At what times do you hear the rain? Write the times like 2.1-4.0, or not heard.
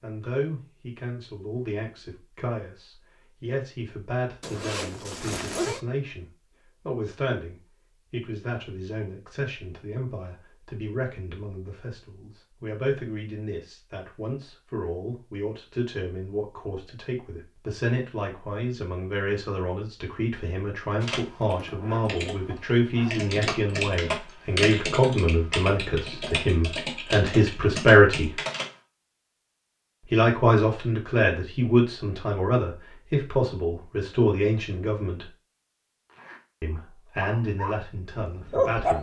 not heard.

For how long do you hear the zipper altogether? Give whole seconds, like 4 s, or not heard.
4 s.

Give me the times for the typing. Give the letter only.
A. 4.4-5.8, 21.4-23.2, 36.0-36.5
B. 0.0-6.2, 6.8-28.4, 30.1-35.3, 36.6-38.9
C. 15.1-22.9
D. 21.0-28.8
D.